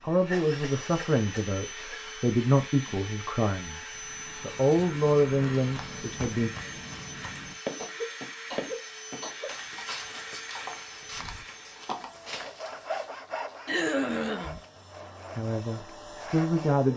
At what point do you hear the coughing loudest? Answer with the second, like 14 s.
14 s.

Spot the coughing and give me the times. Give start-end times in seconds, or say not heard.
0.2-1.9, 7.8-9.6, 13.7-14.6.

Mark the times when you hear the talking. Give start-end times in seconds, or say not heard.
0.0-6.5, 15.3-16.9.